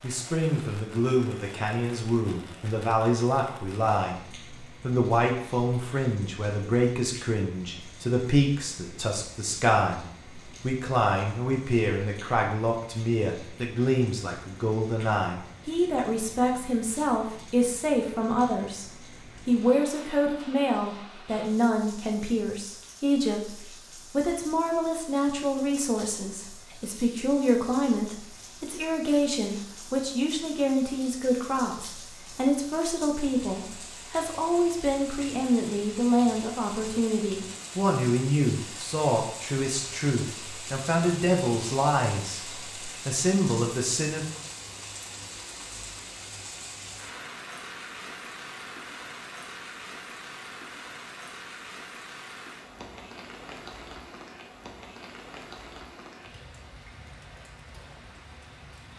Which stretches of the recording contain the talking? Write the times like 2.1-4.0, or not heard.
0.0-44.4.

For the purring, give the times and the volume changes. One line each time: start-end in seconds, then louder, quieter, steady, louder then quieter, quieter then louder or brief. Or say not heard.
not heard.